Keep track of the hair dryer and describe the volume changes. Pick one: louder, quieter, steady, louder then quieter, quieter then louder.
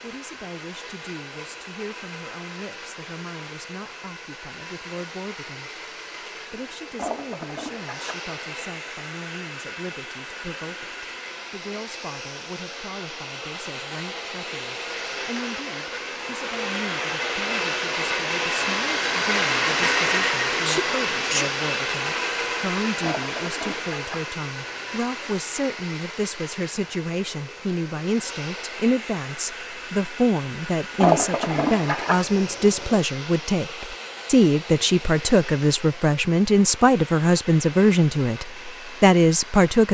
louder then quieter.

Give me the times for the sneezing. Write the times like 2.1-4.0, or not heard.
20.6-21.6.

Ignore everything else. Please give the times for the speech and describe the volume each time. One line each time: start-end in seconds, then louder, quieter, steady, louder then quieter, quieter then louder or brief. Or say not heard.
0.0-39.8 louder.